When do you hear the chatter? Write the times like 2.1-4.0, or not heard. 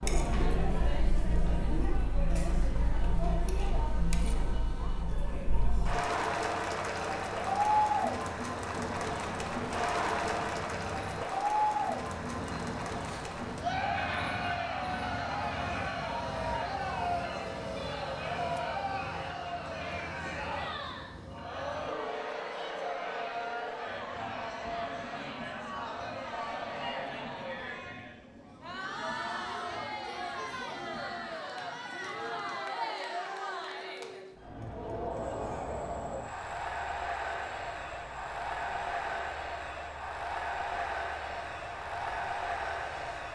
0.0-43.2.